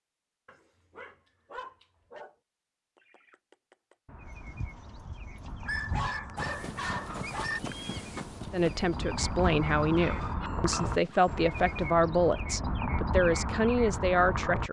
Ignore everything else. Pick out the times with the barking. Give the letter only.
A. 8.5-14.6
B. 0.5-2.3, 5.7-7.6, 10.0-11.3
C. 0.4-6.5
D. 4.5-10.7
B.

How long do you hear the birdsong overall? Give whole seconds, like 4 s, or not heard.
12 s.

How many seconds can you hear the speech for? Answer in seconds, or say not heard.
6 s.